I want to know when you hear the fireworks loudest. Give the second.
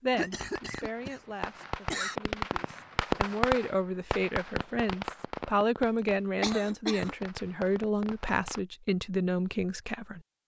3 s.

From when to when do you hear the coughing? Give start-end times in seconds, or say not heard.
0.1-2.2, 6.0-7.2.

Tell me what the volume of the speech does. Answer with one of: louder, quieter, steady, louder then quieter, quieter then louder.
louder.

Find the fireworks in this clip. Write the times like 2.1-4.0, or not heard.
0.2-8.6.